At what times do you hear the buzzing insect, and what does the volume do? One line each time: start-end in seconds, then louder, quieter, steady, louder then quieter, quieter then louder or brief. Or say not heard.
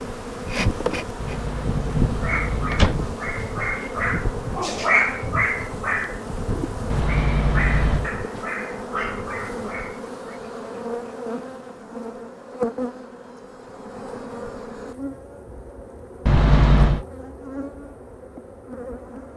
0.0-19.3 quieter.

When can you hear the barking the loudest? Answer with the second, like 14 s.
5 s.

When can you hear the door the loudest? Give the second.
17 s.